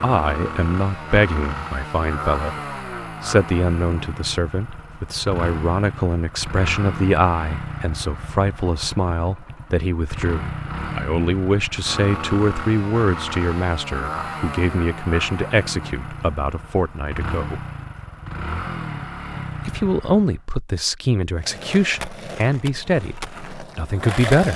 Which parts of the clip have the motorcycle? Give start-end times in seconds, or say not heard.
0.0-20.4.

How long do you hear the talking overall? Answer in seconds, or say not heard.
22 s.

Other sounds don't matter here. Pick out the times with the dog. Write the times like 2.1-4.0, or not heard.
not heard.